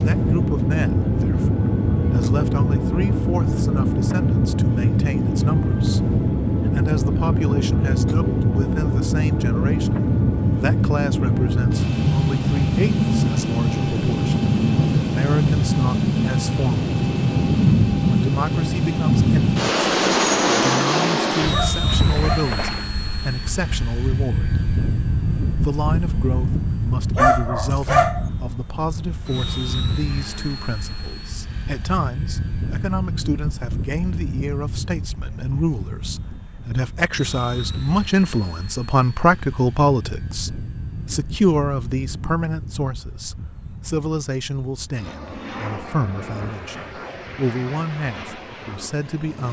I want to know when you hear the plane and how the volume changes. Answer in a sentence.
The plane can be heard from 0.0 to 49.4 s, getting quieter.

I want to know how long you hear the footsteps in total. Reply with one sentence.
You can't hear the footsteps here.